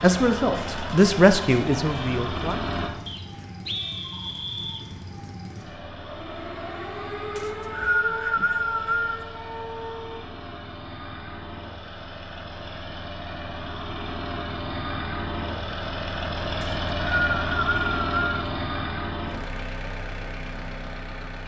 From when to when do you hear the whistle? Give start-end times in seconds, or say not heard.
3.0-4.8, 7.3-9.2, 16.6-18.4.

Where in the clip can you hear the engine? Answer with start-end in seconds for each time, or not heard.
0.0-3.0, 5.5-21.4.